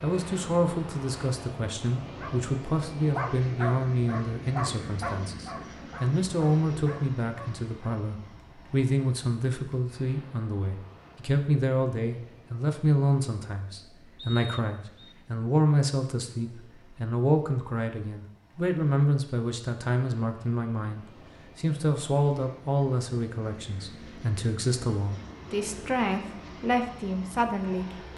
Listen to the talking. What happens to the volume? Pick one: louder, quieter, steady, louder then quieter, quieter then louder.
steady.